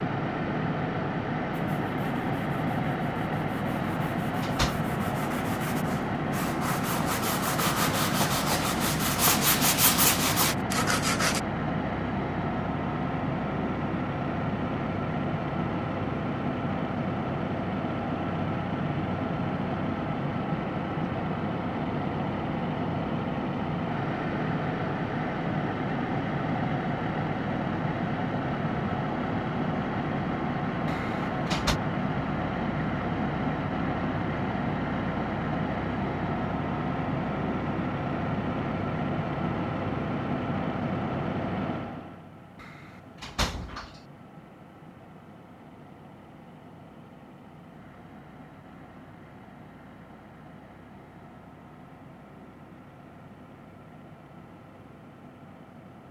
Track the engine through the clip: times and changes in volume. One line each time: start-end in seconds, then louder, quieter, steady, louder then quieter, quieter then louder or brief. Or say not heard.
0.0-56.0 quieter.